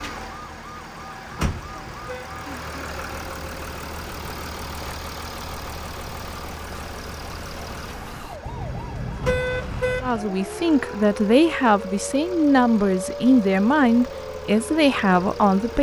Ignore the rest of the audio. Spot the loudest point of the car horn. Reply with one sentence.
The volume of the car horn peaks at 9 seconds.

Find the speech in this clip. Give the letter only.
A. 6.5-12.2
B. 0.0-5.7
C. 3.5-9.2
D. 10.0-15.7
D.